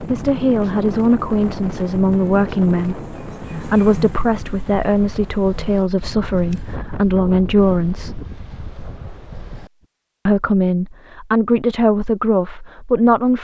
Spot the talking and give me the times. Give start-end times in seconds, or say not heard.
0.0-8.2, 10.2-13.3.